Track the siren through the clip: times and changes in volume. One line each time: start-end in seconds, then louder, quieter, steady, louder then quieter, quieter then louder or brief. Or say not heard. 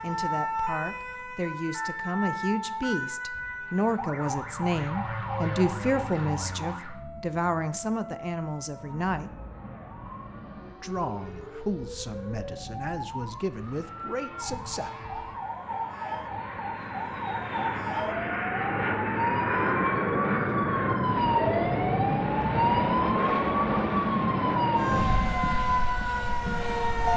0.0-27.1 quieter then louder.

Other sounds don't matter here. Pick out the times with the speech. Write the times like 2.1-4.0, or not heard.
0.0-9.4, 10.8-14.9.